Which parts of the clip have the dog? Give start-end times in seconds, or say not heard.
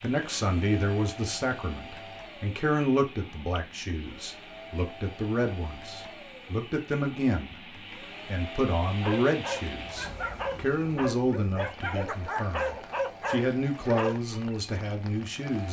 9.0-14.4.